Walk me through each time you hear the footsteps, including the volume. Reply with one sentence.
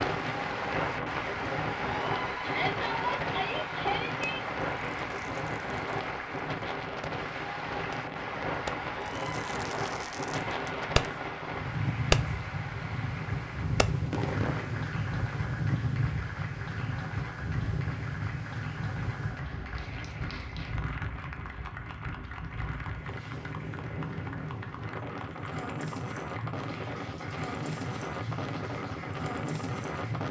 You can't hear the footsteps here.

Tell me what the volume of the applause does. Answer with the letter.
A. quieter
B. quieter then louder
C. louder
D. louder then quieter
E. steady
A.